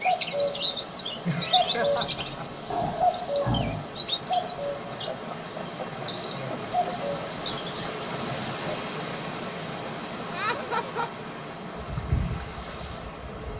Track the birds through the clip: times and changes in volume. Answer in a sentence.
The birds can be heard from 0.0 to 8.0 s, getting quieter then louder.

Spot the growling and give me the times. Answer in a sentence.
You can hear the growling from 2.7 to 3.9 s and from 8.1 to 8.6 s.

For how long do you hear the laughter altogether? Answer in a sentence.
The laughter can be heard for 4 seconds in total.